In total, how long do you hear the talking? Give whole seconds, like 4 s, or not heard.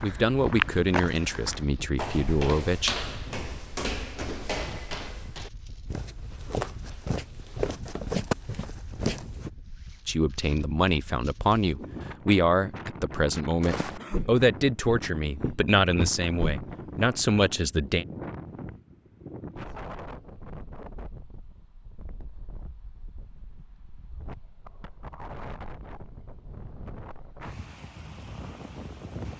11 s.